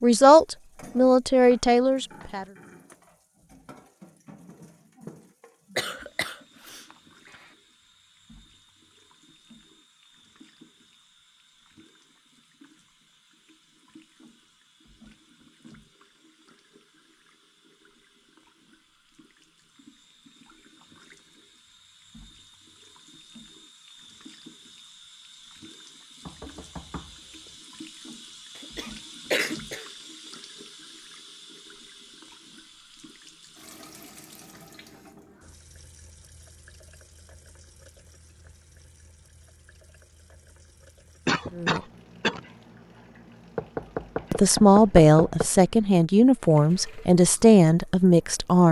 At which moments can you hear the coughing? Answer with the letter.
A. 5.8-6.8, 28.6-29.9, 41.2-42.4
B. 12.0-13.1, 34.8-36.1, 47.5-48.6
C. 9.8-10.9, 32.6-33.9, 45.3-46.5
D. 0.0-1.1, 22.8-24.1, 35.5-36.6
A.